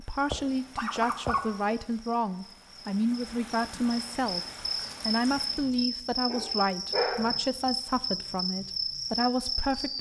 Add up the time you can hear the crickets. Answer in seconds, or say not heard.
10 s.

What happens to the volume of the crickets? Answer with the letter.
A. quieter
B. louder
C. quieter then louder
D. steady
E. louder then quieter
B.